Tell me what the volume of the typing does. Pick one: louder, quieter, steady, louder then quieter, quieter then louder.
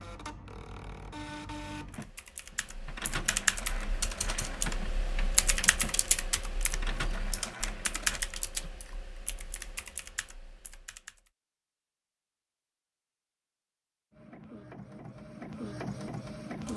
quieter.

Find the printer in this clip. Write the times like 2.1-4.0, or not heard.
0.0-8.2, 14.1-16.7.